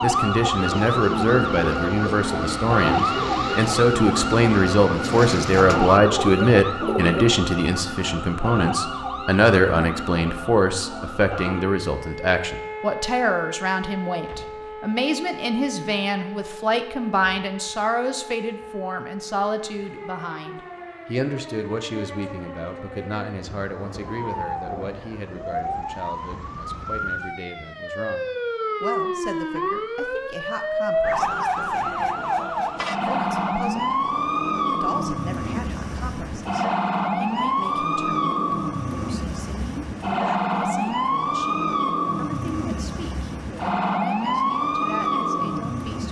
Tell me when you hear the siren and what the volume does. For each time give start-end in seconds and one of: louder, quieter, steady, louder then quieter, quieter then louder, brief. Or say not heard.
0.0-46.0 quieter then louder.